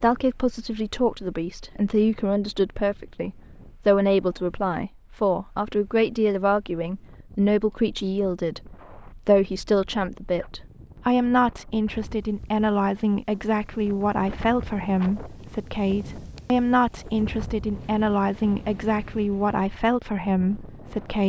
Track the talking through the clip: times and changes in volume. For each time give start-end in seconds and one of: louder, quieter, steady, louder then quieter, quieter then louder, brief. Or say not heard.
0.0-21.2 steady.